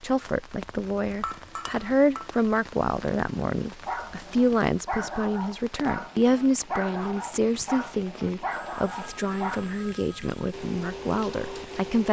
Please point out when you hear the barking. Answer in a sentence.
You can hear the barking from 3.9 to 9.6 s.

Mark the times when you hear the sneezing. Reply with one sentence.
You can't hear the sneezing here.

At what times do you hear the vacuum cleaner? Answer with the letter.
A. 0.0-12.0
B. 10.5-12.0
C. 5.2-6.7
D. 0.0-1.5
B.